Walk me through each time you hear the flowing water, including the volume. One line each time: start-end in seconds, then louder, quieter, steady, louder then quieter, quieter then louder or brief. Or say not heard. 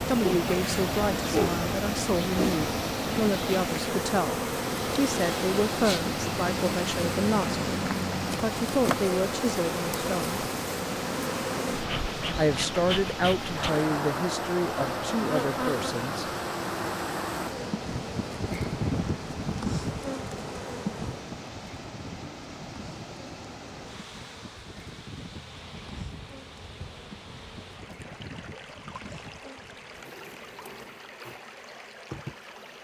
0.0-32.7 quieter.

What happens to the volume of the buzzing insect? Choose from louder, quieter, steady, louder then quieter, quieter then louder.
quieter.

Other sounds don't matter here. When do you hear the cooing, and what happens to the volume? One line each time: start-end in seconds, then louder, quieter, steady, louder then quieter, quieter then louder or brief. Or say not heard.
not heard.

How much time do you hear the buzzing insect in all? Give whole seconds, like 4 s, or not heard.
33 s.